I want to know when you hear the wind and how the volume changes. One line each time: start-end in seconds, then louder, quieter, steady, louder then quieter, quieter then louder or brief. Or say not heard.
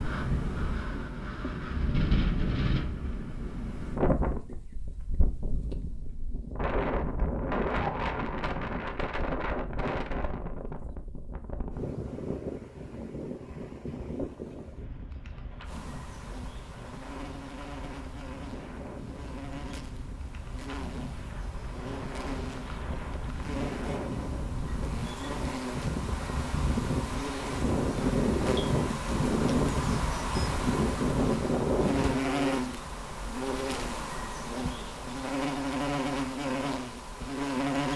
0.0-32.2 quieter then louder.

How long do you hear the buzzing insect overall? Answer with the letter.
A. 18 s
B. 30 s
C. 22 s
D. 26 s
C.